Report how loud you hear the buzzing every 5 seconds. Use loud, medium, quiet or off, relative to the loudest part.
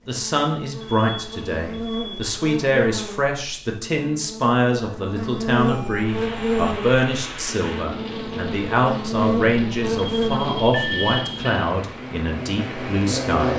medium, loud, loud.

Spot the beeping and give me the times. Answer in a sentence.
You can hear the beeping from 0.8 to 2.3 s, from 5.5 to 6.8 s and from 9.9 to 11.7 s.